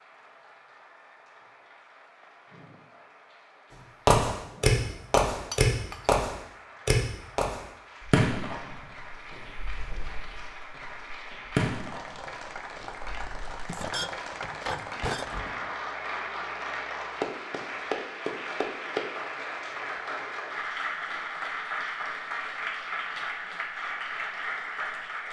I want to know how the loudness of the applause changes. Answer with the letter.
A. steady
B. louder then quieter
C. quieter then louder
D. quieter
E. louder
E.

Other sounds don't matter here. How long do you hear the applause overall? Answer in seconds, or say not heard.
25 s.